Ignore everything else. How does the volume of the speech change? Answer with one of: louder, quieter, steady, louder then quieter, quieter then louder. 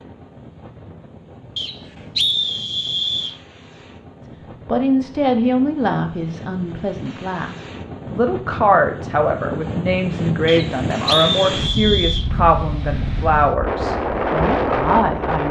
steady.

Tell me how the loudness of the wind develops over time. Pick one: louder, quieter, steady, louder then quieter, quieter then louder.
louder.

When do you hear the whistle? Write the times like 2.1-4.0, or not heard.
1.6-3.4, 10.4-12.2.